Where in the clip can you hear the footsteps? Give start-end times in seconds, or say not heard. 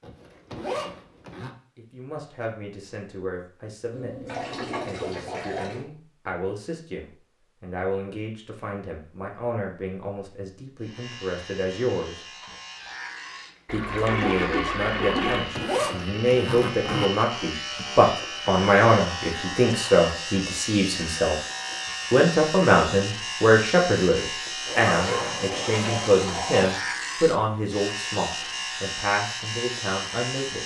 not heard.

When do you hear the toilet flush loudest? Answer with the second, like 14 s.
15 s.